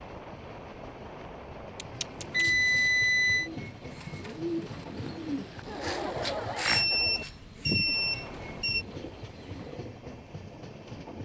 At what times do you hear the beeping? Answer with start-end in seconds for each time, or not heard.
2.3-3.5, 6.7-8.8.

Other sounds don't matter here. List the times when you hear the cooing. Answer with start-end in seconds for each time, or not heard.
1.8-10.1.